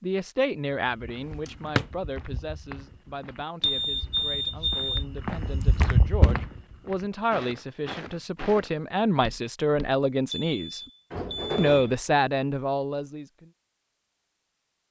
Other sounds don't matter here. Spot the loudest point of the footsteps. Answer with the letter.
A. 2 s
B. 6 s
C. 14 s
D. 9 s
B.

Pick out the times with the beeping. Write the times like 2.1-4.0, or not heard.
3.6-5.0, 10.2-11.9.